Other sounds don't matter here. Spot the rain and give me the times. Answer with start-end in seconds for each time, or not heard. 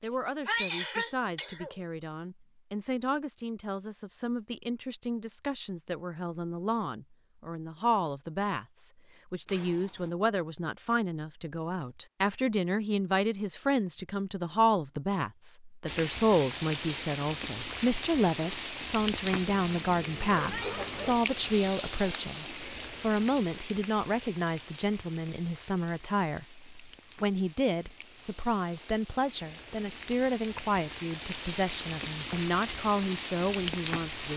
15.8-34.3.